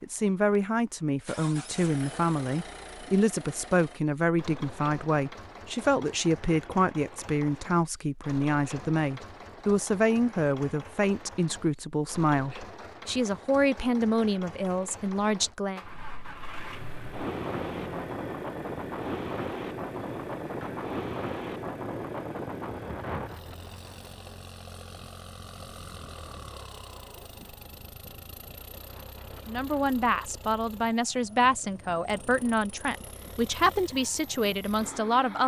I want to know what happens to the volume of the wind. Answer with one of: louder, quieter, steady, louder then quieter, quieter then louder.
quieter.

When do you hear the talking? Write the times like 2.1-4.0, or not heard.
0.0-15.8, 29.4-35.4.